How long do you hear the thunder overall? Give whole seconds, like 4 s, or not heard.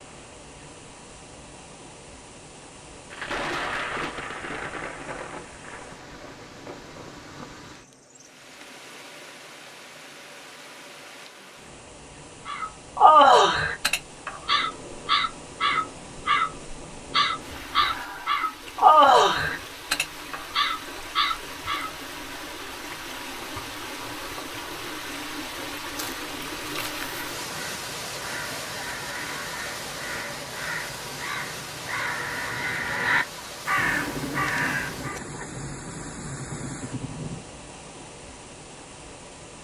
11 s.